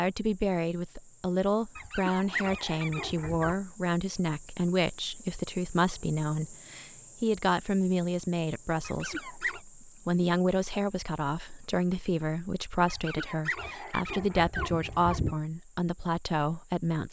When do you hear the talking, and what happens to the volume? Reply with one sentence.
The talking can be heard from 0.0 to 17.0 s, at a steady volume.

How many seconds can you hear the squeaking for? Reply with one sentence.
The squeaking can be heard for 5 seconds in total.